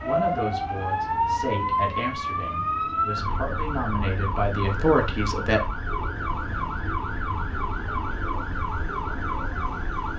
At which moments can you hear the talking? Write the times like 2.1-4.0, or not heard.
0.0-5.6.